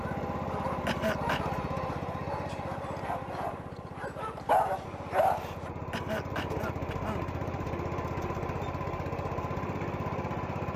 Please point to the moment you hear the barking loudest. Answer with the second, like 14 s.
5 s.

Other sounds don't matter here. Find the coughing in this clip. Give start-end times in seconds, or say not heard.
0.8-1.6, 5.9-7.2.